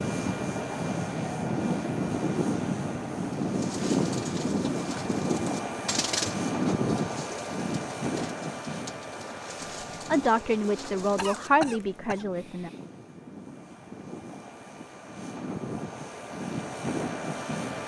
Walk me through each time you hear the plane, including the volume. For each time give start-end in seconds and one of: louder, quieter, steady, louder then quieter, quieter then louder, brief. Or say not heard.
0.0-17.8 quieter then louder.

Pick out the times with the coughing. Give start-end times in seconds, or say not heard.
11.2-12.8.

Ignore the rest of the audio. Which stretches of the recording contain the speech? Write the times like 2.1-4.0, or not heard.
9.9-12.7.